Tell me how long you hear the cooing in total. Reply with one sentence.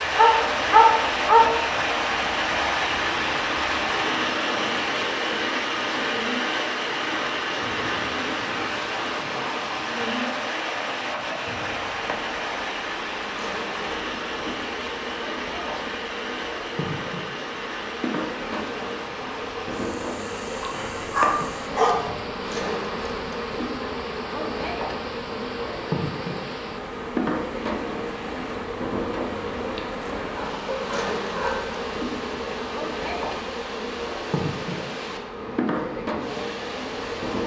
The cooing can't be heard in this clip.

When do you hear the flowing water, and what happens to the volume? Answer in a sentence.
You can hear the flowing water from 0.0 to 37.4 s, getting quieter.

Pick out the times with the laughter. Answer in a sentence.
You can't hear the laughter here.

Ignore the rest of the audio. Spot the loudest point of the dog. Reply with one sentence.
The volume of the dog peaks at 1 second.